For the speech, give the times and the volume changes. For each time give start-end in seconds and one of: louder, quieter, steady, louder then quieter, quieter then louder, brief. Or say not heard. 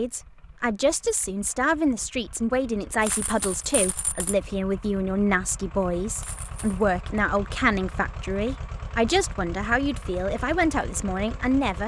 0.0-11.8 steady.